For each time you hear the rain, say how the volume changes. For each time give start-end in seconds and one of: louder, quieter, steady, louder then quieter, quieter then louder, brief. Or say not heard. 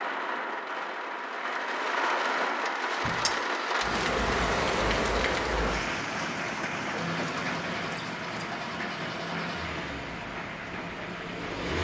0.0-11.7 quieter.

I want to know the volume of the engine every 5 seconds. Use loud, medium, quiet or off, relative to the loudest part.
off, loud, loud.